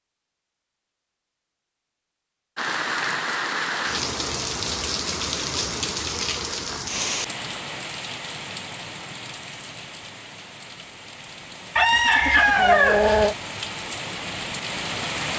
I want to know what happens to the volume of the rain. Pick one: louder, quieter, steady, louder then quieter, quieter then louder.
quieter then louder.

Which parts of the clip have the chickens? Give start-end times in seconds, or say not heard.
11.8-13.3.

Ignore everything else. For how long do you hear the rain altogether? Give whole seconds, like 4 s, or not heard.
13 s.